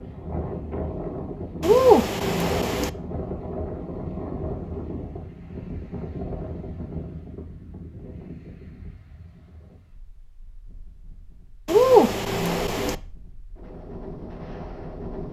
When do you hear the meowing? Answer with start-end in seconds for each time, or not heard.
1.6-2.9, 11.7-12.9.